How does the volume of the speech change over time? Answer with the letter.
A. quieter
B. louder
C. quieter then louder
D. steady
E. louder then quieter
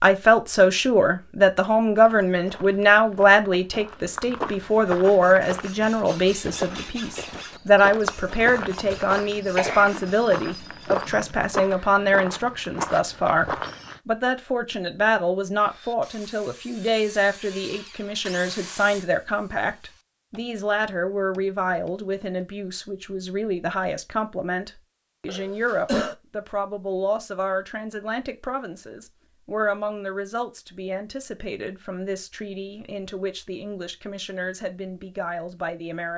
A.